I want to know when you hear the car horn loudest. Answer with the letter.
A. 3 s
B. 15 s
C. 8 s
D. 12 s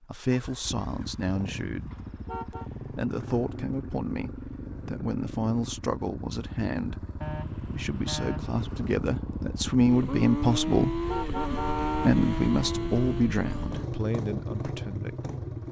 D.